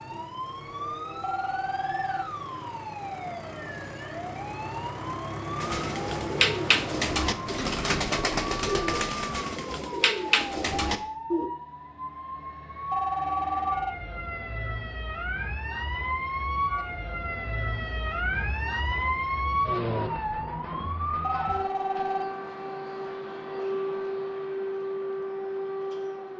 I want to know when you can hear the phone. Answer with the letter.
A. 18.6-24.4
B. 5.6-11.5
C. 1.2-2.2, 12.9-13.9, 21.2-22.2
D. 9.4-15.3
C.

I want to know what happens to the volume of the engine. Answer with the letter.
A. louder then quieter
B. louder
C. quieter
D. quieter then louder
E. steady
B.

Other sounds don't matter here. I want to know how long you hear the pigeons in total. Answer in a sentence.
You can hear the pigeons for 6 seconds altogether.